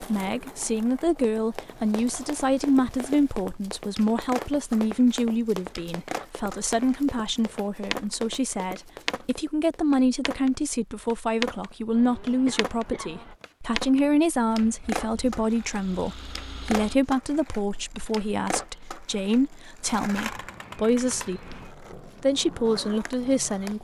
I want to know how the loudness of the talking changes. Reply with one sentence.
The volume of the talking stays about the same.